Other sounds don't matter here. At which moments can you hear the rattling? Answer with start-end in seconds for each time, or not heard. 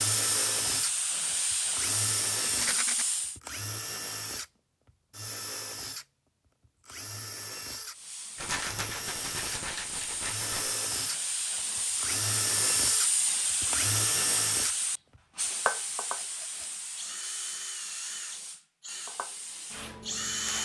2.5-3.0, 8.3-10.8, 16.1-16.8.